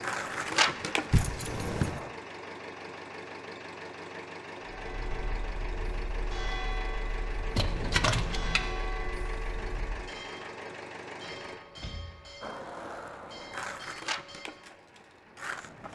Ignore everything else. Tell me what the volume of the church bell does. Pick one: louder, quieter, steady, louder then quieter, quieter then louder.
quieter.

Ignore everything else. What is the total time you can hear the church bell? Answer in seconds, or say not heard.
10 s.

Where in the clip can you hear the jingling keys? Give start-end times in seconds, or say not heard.
1.1-2.0, 7.5-8.7, 11.2-13.6.